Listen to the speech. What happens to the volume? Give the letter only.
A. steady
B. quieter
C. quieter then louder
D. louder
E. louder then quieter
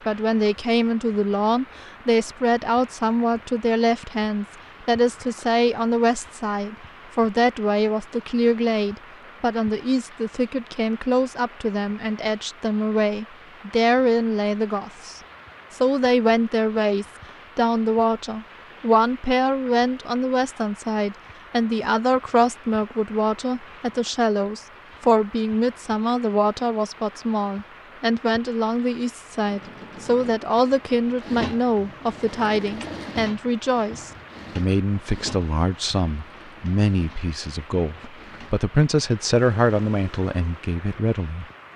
A.